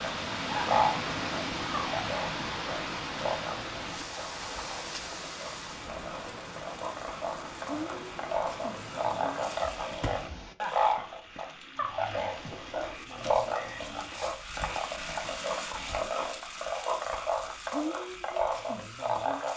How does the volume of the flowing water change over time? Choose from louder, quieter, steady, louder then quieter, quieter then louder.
quieter.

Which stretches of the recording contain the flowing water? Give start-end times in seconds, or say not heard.
0.0-10.6.